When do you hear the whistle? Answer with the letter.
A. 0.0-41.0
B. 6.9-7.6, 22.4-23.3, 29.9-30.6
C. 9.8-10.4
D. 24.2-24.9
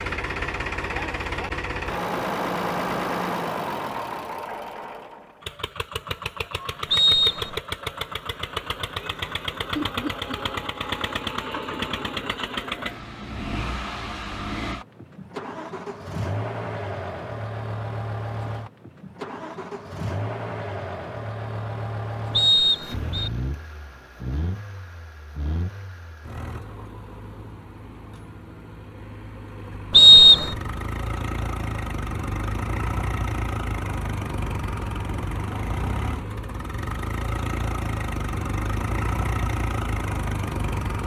B.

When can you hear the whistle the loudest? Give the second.
30 s.